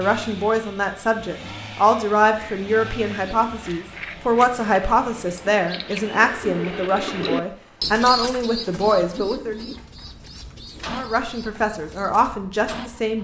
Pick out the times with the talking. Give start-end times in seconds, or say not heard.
0.0-9.7, 10.9-13.1.